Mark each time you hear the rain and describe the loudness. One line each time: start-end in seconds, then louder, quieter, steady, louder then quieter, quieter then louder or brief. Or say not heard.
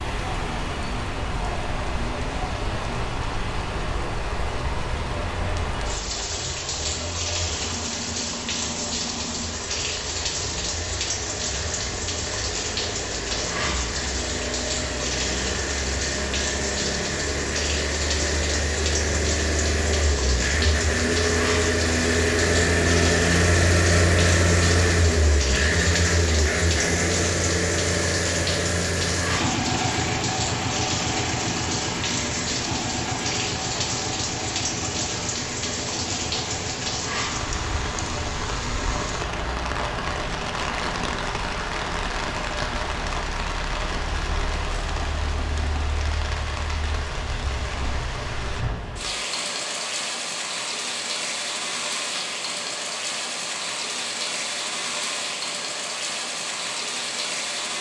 0.0-57.7 steady.